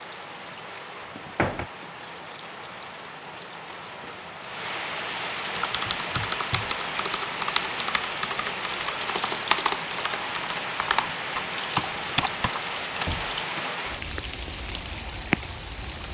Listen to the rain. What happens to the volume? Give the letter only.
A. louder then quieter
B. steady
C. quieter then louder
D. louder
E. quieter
D.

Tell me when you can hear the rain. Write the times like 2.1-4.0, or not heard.
0.0-16.0.